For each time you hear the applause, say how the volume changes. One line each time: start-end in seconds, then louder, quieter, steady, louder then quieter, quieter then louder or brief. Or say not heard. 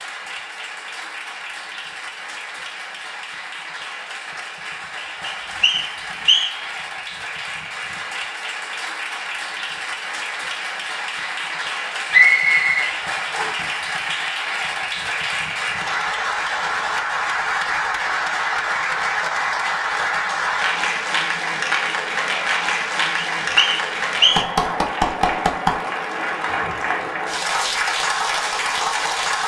0.0-29.4 louder.